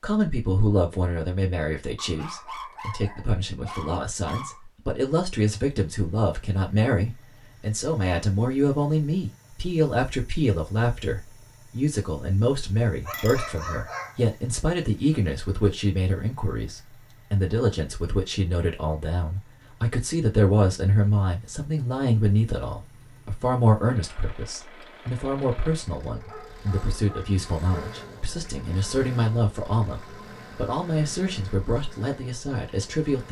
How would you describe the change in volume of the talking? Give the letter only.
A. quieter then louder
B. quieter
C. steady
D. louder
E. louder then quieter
C.